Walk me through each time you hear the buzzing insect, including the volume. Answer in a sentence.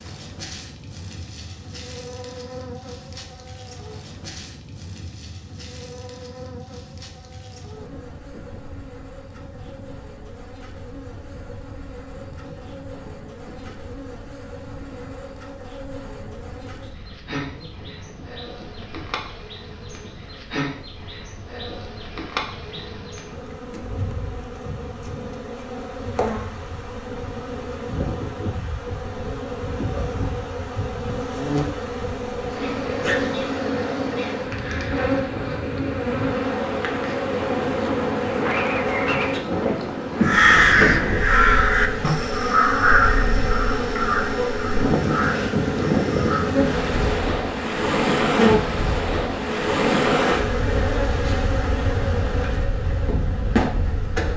You can hear the buzzing insect from 0.0 to 54.3 s, getting louder.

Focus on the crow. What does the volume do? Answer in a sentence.
The volume of the crow goes down.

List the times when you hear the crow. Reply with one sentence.
You can hear the crow from 40.2 to 46.5 s.